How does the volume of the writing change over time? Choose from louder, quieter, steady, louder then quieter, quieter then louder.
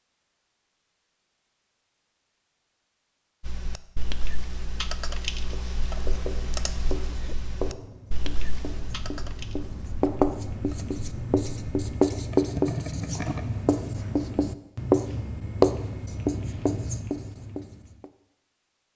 louder.